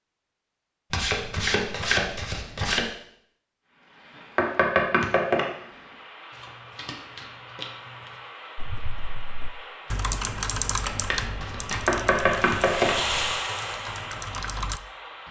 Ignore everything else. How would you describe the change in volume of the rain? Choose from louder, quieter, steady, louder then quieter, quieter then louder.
louder.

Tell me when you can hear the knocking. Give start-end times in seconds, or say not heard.
4.3-5.5, 11.8-12.9.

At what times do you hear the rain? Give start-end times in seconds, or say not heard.
3.6-15.2.